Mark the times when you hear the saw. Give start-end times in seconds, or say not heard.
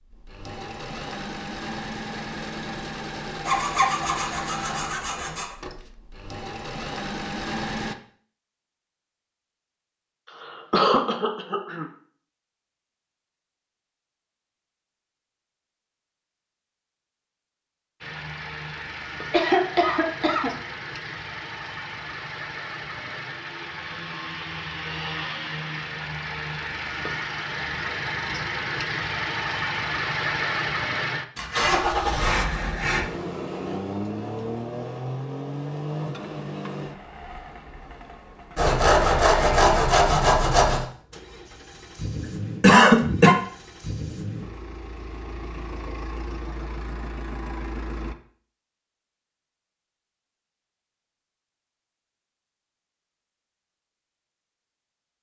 3.5-5.5, 31.4-33.1, 38.5-40.9.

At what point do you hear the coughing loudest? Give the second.
43 s.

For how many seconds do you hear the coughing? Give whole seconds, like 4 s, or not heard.
4 s.